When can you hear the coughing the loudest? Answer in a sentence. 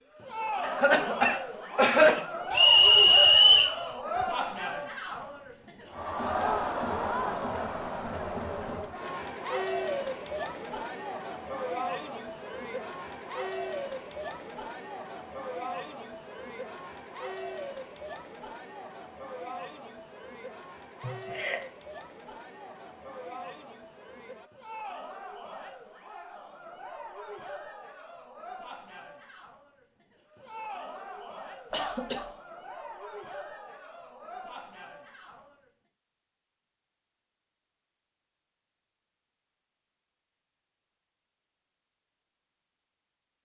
The loudest moment of the coughing is at 2 seconds.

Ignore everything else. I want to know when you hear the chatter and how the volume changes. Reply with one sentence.
You can hear the chatter from 0.1 to 35.7 s, getting quieter.